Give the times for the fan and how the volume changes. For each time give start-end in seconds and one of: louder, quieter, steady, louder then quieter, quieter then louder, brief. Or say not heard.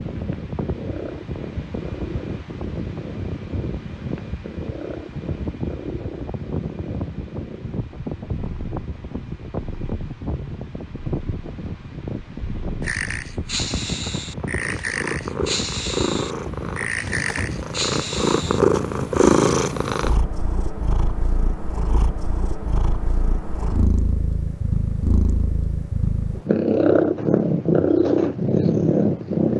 0.0-19.9 steady.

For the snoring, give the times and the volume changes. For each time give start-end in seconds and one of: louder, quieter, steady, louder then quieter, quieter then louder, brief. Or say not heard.
12.8-18.8 steady.